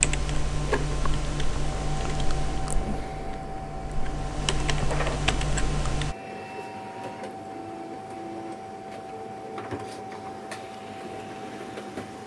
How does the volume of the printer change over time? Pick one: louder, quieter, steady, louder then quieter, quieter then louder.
steady.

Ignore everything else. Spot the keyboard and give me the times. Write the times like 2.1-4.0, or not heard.
0.0-6.2.